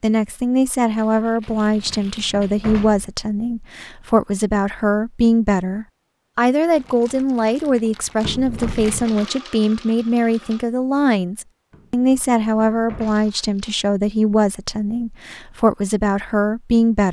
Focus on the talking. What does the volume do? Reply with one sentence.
The volume of the talking stays about the same.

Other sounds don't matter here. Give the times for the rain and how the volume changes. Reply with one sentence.
The rain can't be heard in this clip.